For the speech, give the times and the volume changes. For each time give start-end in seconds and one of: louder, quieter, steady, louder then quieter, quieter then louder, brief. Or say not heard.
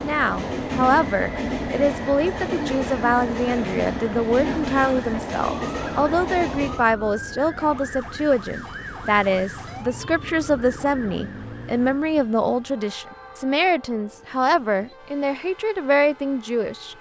0.0-16.9 steady.